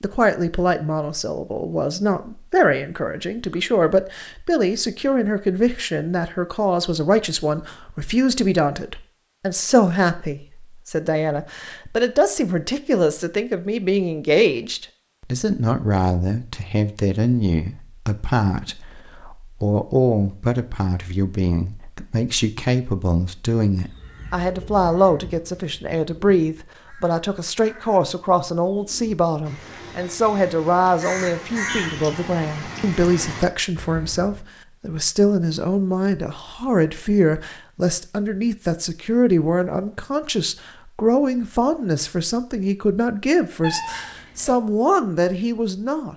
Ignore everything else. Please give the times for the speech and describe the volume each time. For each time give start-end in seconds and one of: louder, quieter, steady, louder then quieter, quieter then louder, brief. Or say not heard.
0.0-46.1 steady.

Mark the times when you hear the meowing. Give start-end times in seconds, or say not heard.
43.6-44.5.